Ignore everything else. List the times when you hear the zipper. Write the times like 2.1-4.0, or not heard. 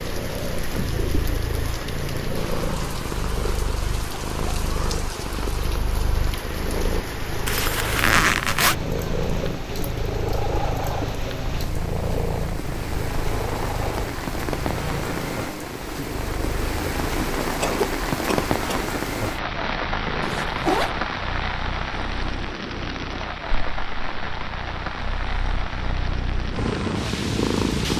7.5-8.8, 20.2-20.9.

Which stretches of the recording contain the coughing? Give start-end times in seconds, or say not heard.
17.6-18.9.